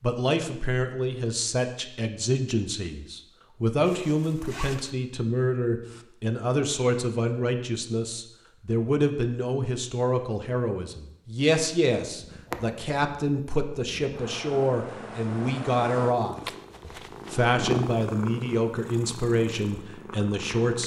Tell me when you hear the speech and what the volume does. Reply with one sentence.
You can hear the speech from 0.0 to 20.8 s, at a steady volume.